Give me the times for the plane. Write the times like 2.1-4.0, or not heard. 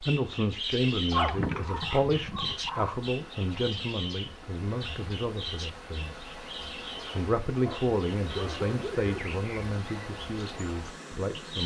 not heard.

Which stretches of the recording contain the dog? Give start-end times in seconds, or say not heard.
1.1-3.0, 7.6-9.2.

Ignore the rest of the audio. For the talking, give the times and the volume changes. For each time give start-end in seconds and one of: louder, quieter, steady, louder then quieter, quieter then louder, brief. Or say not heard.
0.0-6.3 quieter
7.1-11.6 quieter.